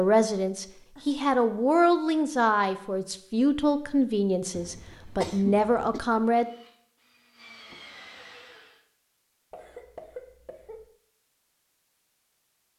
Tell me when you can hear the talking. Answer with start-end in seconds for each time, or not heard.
0.0-6.5.